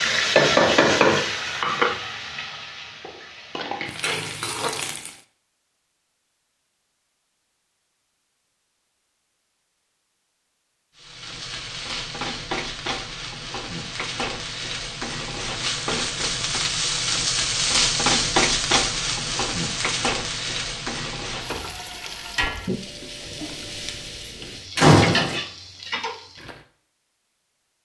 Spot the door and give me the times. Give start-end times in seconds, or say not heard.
24.8-25.4.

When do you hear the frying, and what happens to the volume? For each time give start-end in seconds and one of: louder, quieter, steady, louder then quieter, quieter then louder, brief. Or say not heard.
0.0-5.2 quieter then louder
10.9-26.6 louder then quieter.